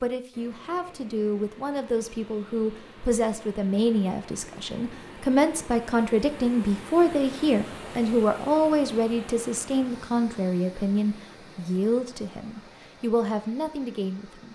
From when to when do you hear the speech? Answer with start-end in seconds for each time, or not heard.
0.0-14.5.